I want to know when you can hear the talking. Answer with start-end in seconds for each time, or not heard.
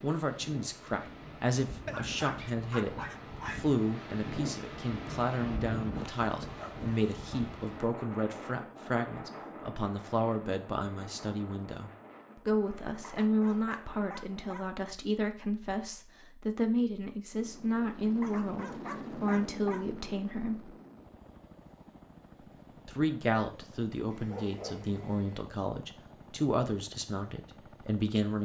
0.0-20.8, 22.9-28.3.